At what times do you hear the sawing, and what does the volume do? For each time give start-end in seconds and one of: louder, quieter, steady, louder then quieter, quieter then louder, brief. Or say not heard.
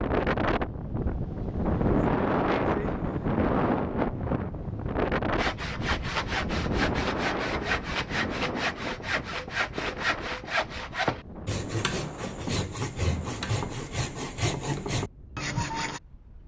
5.3-16.0 steady.